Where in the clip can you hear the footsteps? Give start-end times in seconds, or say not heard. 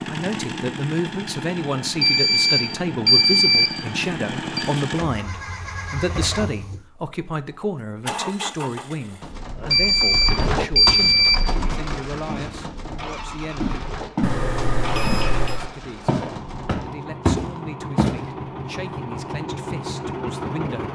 10.3-14.4, 15.1-18.1.